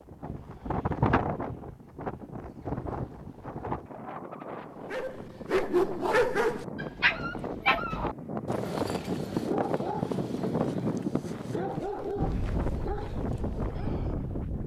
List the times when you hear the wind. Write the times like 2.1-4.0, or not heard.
0.0-14.6.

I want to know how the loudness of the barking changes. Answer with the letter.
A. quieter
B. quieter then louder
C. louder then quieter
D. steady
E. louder
A.